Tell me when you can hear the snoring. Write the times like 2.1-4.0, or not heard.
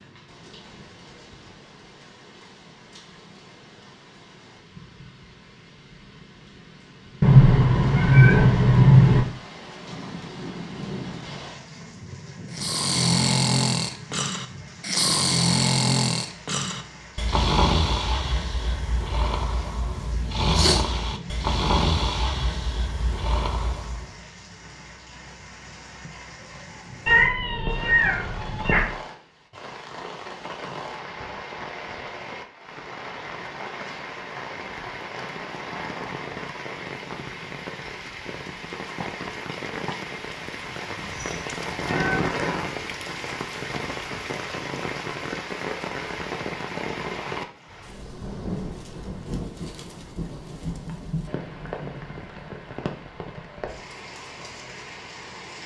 12.5-24.1.